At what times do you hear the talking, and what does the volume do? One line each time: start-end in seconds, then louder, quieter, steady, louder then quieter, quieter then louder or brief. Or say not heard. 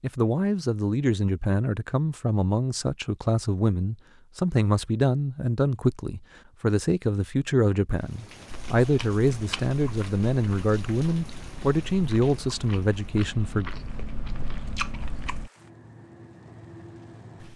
0.0-13.7 steady.